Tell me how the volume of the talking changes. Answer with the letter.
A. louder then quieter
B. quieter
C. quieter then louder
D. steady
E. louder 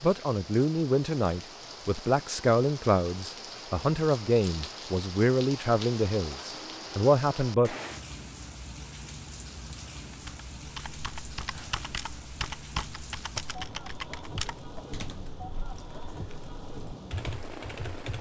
D.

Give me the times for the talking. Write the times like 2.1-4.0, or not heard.
0.0-7.8.